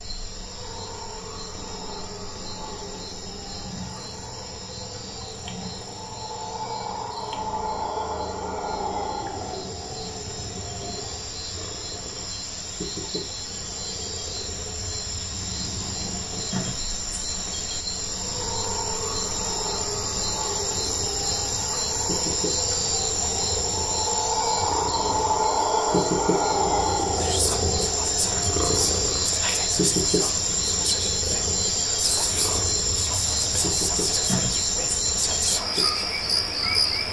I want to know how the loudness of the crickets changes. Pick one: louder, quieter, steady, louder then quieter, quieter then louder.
louder.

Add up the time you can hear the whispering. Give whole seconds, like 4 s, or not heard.
9 s.